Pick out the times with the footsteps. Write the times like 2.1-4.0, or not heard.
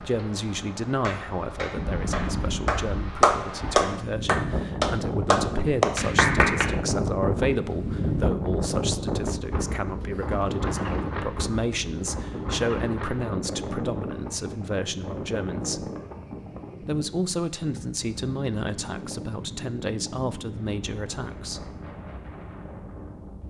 not heard.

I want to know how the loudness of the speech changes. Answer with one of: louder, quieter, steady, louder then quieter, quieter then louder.
steady.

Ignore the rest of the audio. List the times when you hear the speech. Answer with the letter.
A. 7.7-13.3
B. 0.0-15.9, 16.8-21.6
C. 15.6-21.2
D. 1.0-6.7
B.